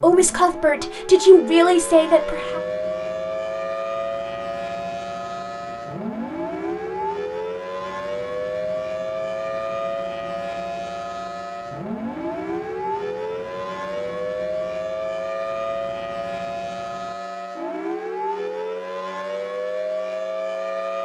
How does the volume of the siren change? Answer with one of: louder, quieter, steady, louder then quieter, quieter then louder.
steady.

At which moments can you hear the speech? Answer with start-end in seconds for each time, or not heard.
0.0-2.6.